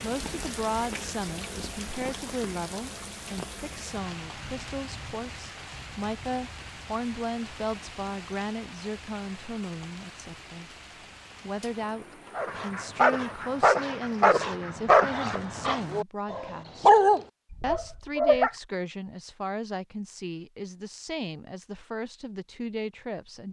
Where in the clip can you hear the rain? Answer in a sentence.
You can hear the rain from 0.0 to 14.3 s.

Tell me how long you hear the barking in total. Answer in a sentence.
You can hear the barking for 6 seconds altogether.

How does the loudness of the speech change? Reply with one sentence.
The volume of the speech stays about the same.